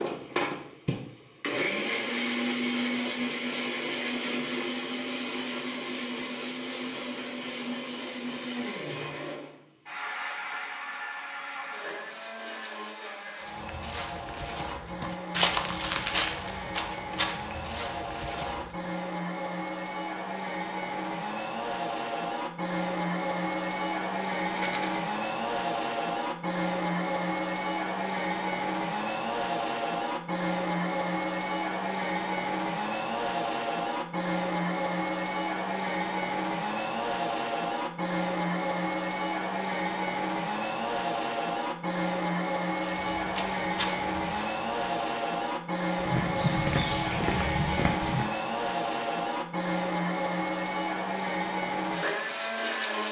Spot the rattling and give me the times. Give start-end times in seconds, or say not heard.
24.4-25.0.